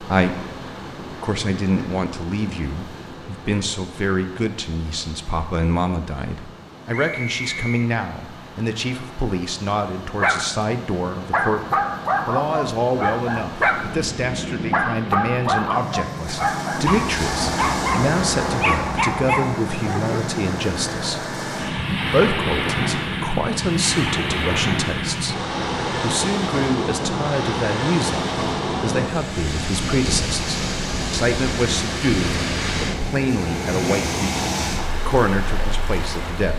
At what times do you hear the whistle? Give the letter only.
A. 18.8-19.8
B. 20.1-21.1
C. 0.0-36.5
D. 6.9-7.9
D.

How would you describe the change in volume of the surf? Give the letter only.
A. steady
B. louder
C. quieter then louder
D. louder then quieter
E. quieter
B.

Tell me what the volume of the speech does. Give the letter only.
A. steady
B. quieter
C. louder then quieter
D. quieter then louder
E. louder
A.